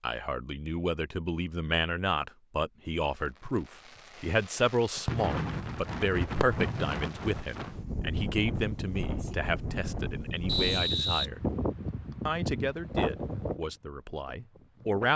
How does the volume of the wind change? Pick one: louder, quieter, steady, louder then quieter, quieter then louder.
steady.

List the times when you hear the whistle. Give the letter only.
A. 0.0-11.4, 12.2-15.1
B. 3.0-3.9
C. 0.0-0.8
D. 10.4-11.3
D.